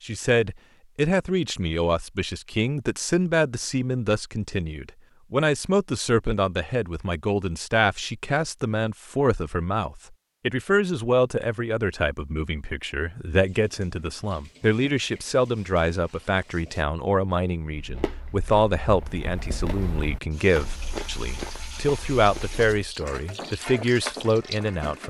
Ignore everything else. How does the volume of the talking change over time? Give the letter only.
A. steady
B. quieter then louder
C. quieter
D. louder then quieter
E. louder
A.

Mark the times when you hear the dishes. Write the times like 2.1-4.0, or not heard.
not heard.